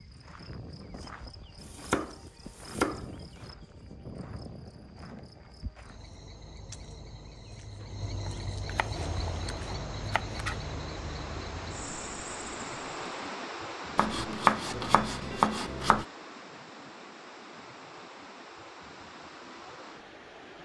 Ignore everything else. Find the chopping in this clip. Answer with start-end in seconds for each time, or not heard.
1.6-3.5, 8.2-10.6, 13.9-16.1.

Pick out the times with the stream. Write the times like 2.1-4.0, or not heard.
8.9-20.6.